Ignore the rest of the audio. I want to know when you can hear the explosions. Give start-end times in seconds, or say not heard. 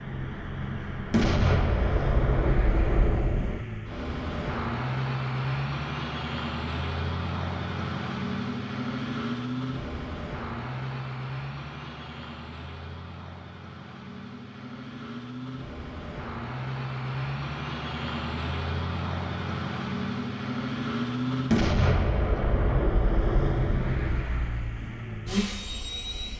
1.1-3.6, 21.5-24.2.